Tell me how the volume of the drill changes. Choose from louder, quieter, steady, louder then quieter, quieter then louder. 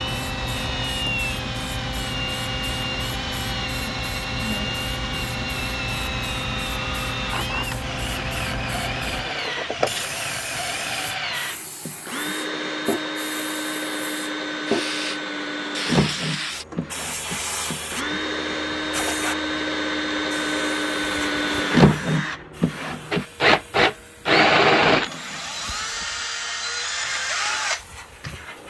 louder.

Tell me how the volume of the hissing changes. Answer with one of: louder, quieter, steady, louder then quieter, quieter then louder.
quieter.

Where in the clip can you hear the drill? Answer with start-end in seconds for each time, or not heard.
0.0-28.6.